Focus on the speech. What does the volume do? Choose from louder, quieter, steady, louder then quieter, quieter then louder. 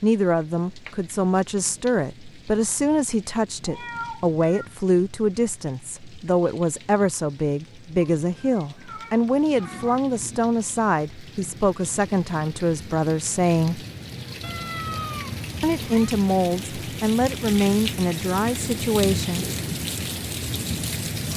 steady.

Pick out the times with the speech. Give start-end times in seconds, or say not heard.
0.0-13.8, 15.6-19.4.